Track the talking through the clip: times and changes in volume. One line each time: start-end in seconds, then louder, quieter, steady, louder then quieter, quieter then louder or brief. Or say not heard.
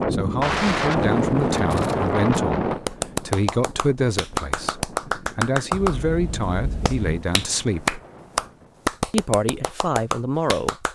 0.0-8.0 steady
9.1-10.9 brief.